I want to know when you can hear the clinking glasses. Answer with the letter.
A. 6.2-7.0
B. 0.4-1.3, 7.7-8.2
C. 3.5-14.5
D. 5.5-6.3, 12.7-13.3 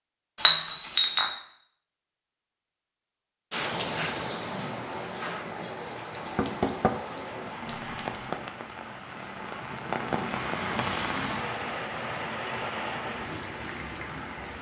B.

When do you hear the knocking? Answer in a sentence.
The knocking can be heard from 6.2 to 7.0 s.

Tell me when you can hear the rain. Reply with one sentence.
The rain can be heard from 3.5 to 14.5 s.